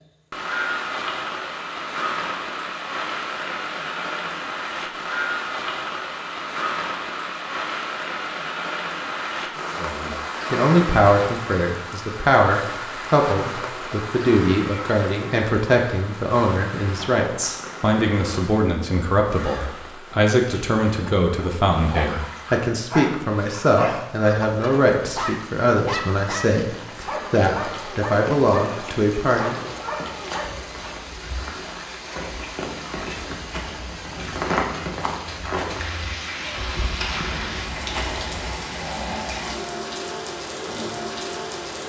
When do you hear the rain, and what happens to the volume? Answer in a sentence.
You can hear the rain from 0.0 to 41.8 s, getting quieter then louder.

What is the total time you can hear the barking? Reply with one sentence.
You can hear the barking for 10 seconds altogether.